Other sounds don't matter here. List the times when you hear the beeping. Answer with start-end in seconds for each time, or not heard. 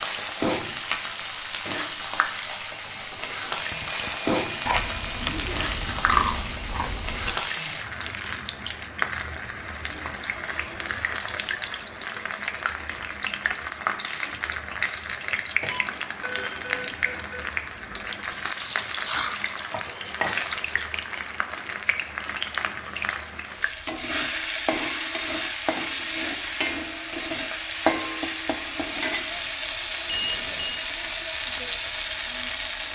3.5-5.3, 15.7-17.6, 30.1-30.9.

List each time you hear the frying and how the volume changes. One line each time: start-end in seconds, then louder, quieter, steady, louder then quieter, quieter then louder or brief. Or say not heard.
0.0-32.8 steady.